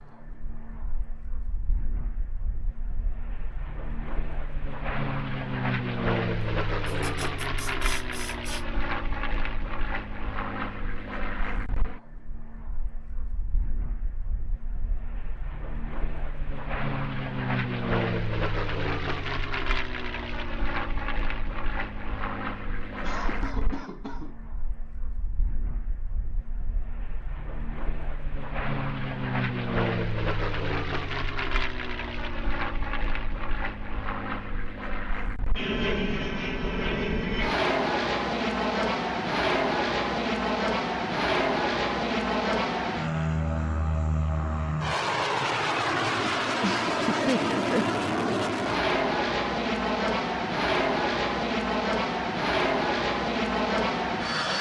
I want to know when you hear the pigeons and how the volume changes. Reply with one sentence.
You can't hear the pigeons here.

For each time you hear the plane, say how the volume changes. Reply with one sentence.
The plane can be heard from 0.0 to 54.5 s, getting louder.